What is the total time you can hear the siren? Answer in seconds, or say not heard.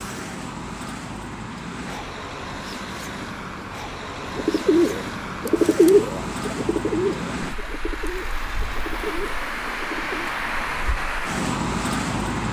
not heard.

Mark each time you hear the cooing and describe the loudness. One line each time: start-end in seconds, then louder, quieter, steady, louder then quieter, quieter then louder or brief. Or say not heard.
4.2-10.3 quieter.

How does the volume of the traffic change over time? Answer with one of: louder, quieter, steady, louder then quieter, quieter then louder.
louder.